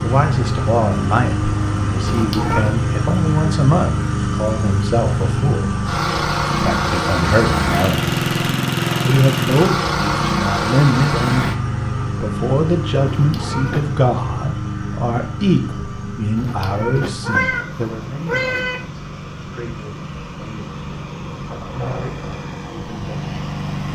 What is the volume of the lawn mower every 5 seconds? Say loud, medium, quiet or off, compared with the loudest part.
loud, loud, loud, medium, medium.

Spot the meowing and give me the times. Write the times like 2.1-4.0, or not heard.
2.1-2.8, 13.2-13.9, 16.4-18.9.